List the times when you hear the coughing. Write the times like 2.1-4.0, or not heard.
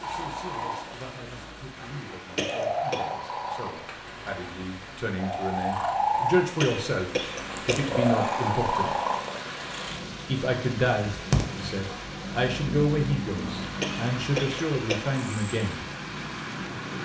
2.4-3.0, 6.6-7.9, 13.8-15.2.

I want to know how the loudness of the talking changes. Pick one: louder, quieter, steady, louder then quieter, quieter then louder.
louder.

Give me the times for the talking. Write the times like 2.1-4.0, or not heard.
0.0-9.1, 10.2-15.8.